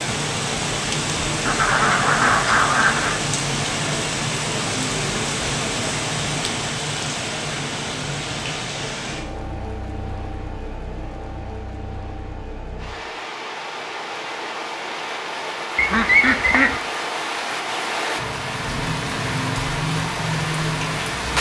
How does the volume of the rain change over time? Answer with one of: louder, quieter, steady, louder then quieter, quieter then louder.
quieter then louder.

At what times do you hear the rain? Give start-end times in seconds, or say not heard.
0.0-21.3.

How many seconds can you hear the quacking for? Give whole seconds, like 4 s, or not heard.
3 s.